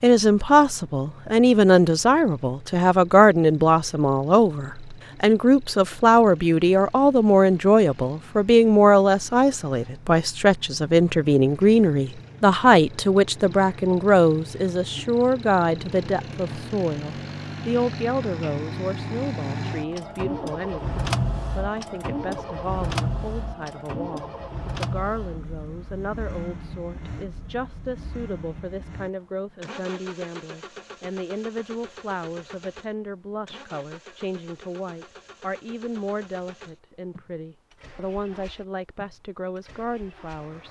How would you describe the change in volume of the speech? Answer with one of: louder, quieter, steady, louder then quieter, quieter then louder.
quieter.